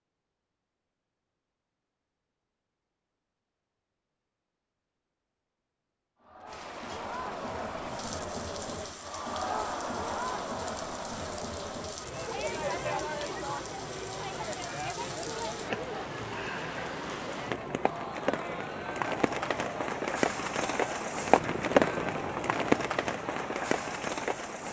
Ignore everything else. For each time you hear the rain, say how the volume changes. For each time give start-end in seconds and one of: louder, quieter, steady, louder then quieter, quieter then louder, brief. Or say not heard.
6.5-24.6 louder.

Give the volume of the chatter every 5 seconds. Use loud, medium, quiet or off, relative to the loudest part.
off, loud, loud, loud, medium.